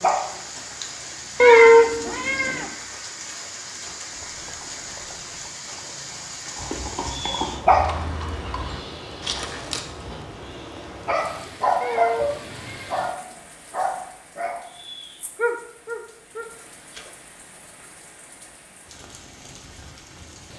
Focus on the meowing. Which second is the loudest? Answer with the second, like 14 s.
2 s.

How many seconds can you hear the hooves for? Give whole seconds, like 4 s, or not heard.
6 s.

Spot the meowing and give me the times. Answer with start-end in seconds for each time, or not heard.
1.4-2.6, 11.8-13.1.